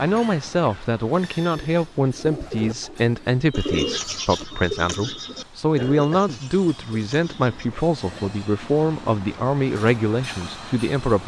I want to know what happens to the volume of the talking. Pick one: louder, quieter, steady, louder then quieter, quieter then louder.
steady.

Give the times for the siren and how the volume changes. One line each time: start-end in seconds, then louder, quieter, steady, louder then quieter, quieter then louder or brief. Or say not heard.
not heard.